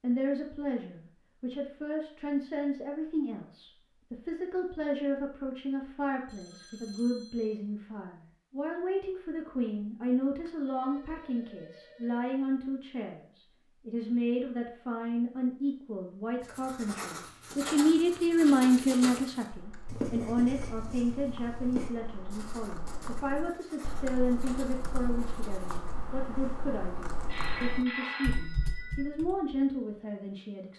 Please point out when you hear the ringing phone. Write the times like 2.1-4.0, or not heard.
6.2-7.6, 10.4-12.2, 27.2-29.1.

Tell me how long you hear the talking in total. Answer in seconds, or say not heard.
31 s.